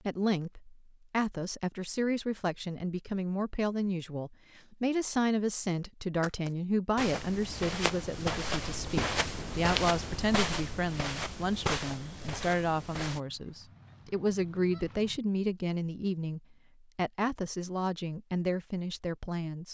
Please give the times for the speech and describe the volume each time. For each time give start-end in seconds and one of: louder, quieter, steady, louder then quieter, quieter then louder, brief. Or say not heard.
0.1-19.7 steady.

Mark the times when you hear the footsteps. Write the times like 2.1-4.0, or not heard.
6.2-13.2.